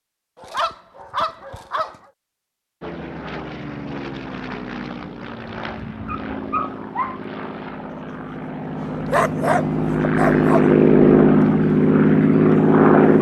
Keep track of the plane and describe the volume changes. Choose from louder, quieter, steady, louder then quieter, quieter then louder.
louder.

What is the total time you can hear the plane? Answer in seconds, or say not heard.
10 s.